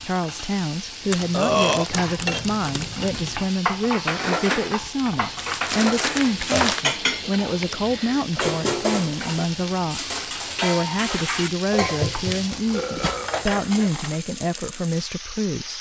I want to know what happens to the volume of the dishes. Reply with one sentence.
The loudness of the dishes stays about the same.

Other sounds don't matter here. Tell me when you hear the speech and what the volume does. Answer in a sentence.
You can hear the speech from 0.0 to 15.7 s, at a steady volume.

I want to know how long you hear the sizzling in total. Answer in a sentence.
The sizzling can be heard for 16 seconds in total.